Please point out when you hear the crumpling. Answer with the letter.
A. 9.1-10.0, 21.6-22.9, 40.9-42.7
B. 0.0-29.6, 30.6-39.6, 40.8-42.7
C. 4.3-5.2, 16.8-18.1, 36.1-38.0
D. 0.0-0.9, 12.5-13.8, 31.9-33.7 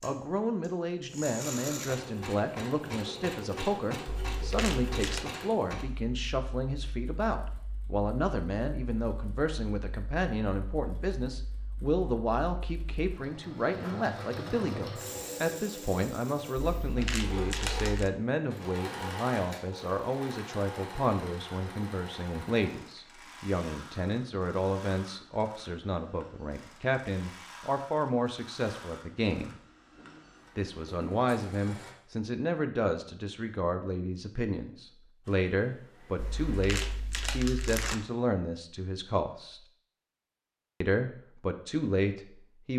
C.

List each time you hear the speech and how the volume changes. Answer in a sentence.
You can hear the speech from 0.0 to 29.6 s, at a steady volume; from 30.6 to 39.6 s, at a steady volume; and briefly from 40.8 to 42.7 s.